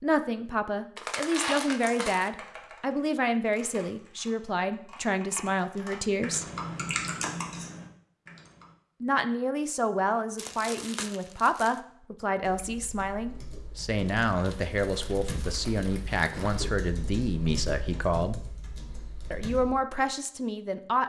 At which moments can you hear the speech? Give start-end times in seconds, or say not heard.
0.0-6.5, 9.0-18.4, 19.3-21.0.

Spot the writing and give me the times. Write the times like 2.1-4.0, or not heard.
not heard.